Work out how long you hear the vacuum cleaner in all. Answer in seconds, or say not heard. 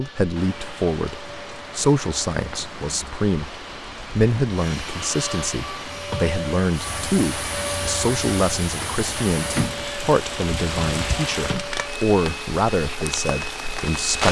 14 s.